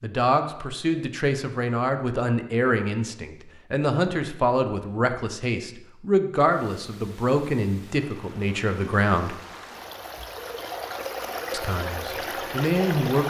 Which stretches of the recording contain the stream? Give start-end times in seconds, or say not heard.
6.4-13.2.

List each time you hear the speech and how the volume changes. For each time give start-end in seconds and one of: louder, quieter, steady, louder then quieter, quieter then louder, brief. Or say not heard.
0.0-9.3 steady
11.5-13.2 brief.